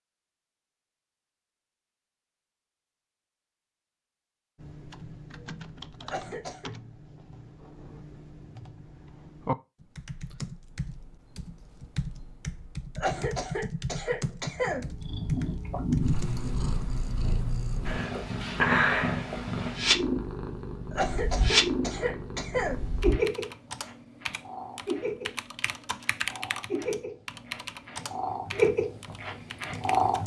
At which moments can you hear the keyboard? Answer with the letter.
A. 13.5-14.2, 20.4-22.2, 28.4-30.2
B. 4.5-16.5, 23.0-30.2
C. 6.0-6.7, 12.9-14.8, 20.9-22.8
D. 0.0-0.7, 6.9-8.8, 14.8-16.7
B.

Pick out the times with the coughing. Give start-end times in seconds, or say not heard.
6.0-6.7, 12.9-14.8, 20.9-22.8.